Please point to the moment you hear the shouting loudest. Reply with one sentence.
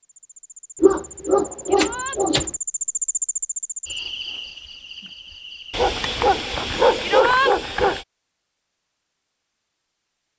The loudest moment of the shouting is at 7 seconds.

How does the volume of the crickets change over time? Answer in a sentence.
The volume of the crickets goes up, then down.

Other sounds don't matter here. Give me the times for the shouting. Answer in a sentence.
You can hear the shouting from 1.6 to 2.2 s and from 7.0 to 7.5 s.